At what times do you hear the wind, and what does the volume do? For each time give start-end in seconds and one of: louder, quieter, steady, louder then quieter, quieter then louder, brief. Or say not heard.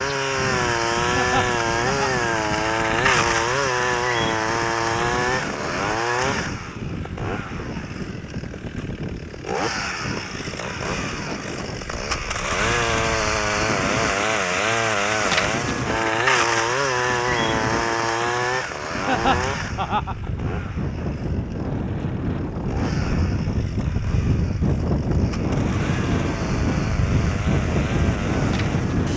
0.2-29.1 louder.